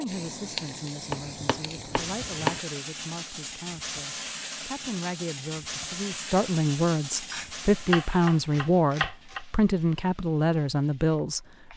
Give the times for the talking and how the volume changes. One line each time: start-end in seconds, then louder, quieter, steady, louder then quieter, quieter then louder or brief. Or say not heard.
0.0-11.7 louder.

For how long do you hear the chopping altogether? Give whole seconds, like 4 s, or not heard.
4 s.